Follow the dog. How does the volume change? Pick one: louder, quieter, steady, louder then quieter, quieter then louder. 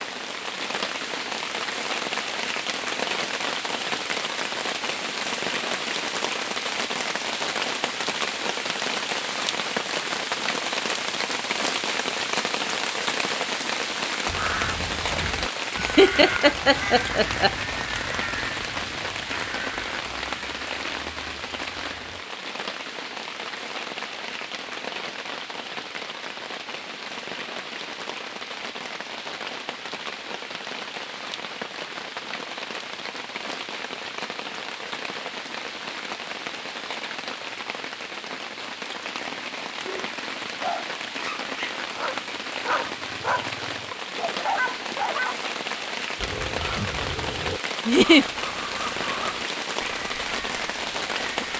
quieter then louder.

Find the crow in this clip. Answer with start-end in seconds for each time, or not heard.
14.2-22.2, 46.1-51.5.